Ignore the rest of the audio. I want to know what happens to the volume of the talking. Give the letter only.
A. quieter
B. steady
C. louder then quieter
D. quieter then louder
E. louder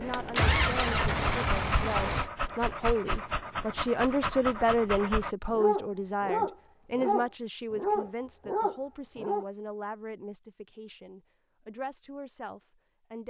C.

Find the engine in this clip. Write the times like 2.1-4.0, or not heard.
0.0-2.3.